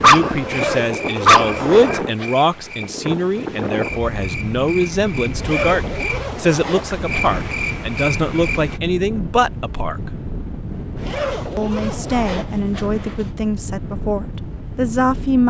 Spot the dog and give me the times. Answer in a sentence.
The dog can be heard from 0.0 to 2.0 s.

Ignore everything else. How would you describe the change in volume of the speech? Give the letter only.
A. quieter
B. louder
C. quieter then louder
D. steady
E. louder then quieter
D.